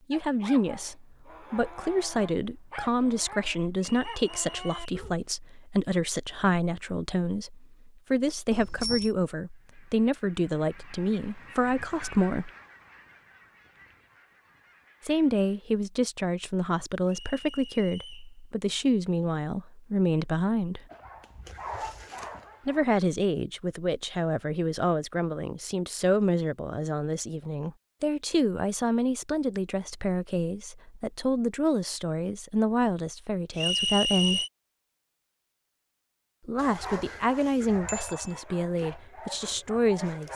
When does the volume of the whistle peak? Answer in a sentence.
The loudest moment of the whistle is at 34 seconds.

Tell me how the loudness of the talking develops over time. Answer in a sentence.
The loudness of the talking stays about the same.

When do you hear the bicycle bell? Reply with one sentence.
You can hear the bicycle bell from 8.5 to 9.1 s and from 37.9 to 38.4 s.